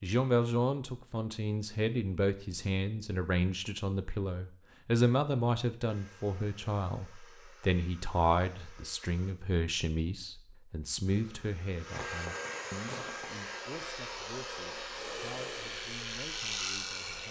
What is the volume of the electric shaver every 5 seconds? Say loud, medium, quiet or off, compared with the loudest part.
off, off, medium, loud.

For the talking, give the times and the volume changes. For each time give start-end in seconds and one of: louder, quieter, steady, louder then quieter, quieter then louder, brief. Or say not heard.
0.0-17.2 quieter.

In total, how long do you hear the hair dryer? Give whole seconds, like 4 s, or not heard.
10 s.